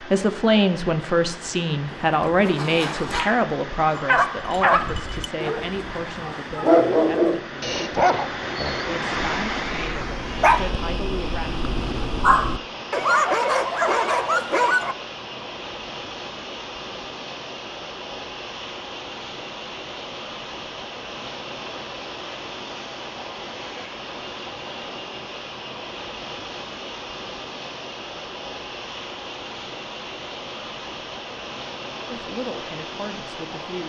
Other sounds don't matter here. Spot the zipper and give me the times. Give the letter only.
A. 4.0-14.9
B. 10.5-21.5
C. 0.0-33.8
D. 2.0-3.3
D.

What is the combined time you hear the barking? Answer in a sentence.
You can hear the barking for 11 seconds altogether.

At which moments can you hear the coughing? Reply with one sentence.
You can't hear the coughing here.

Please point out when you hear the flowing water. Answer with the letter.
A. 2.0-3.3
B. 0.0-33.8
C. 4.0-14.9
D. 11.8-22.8
B.